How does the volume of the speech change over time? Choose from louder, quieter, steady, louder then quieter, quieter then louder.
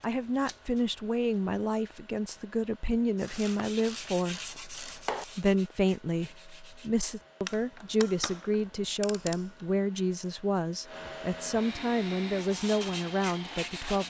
steady.